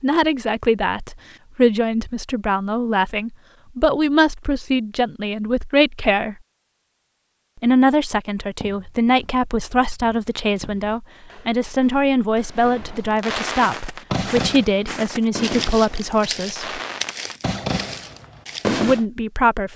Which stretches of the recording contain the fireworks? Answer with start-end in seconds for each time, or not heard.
12.5-19.1.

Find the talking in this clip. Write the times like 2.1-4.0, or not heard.
0.0-6.3, 7.6-16.8, 18.6-19.7.